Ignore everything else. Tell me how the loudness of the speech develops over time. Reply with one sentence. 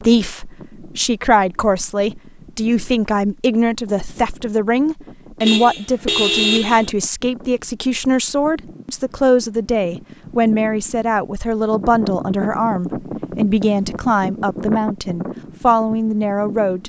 The volume of the speech stays about the same.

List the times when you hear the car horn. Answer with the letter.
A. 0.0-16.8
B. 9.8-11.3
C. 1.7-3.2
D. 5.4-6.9
D.